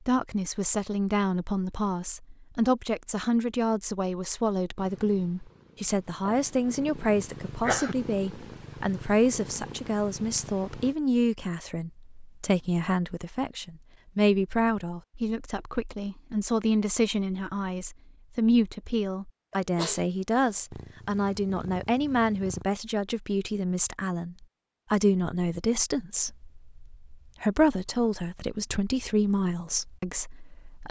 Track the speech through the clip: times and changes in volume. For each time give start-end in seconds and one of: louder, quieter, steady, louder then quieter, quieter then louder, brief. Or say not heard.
0.1-30.8 steady.